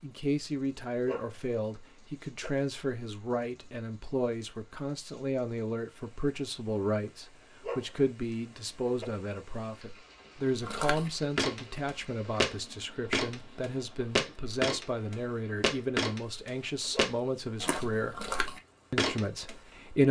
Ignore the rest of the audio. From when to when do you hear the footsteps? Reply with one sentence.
You can hear the footsteps from 10.6 to 19.6 s.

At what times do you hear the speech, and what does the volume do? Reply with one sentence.
The speech can be heard from 0.0 to 18.2 s, at a steady volume; and briefly from 18.9 to 20.0 s.